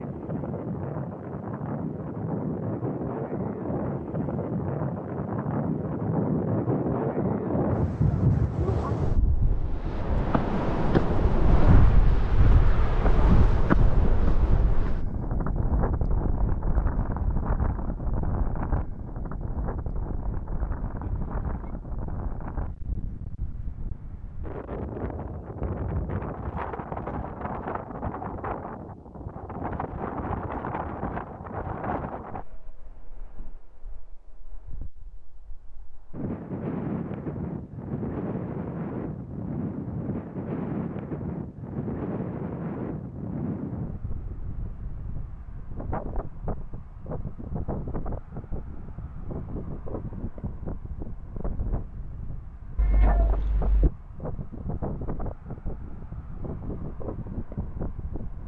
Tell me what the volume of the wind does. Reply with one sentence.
The loudness of the wind goes down.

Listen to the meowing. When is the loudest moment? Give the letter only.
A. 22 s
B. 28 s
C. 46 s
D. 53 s
D.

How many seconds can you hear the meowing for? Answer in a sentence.
The meowing can be heard for 2 seconds in total.